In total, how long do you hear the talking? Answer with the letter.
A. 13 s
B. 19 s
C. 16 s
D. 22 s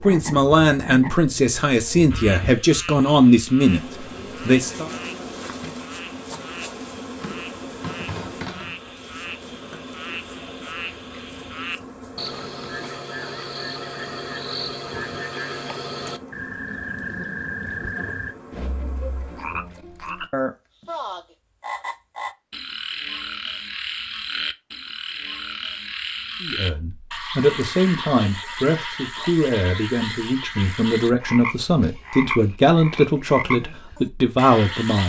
A.